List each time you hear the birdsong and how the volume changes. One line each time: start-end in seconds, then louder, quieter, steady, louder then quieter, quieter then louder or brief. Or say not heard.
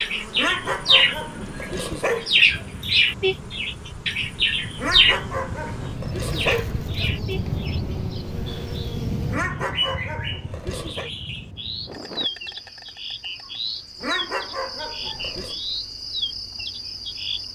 0.0-17.5 quieter.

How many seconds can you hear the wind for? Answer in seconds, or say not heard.
12 s.